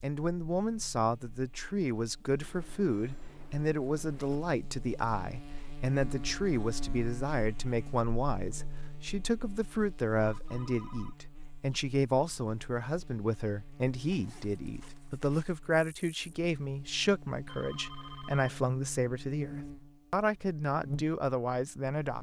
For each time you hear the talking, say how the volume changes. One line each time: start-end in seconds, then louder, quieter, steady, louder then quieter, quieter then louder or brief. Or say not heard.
0.0-22.1 steady.